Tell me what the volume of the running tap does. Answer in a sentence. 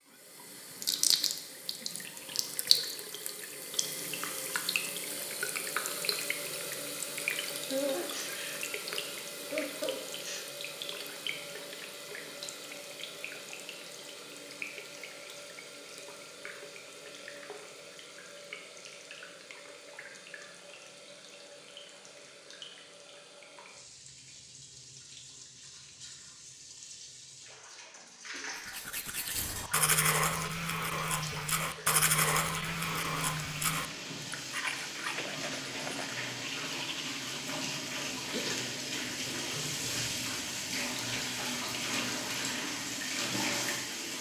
The volume of the running tap goes down, then up.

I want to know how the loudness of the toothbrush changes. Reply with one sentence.
The loudness of the toothbrush goes down.